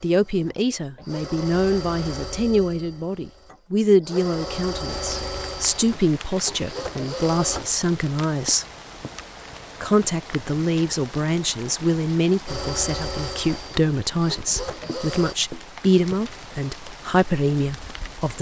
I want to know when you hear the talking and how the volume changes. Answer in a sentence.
You can hear the talking from 0.0 to 8.7 s, at a steady volume; and from 9.8 to 18.3 s, at a steady volume.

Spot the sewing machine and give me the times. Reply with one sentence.
You can hear the sewing machine from 0.1 to 7.8 s and from 12.4 to 15.3 s.